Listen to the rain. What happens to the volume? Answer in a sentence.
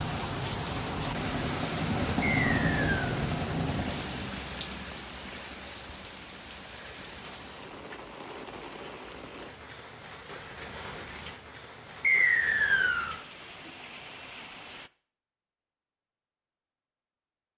The loudness of the rain goes down.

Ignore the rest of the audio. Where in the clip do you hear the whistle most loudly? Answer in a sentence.
The volume of the whistle peaks at 12 seconds.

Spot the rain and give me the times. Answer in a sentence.
The rain can be heard from 0.0 to 14.9 s.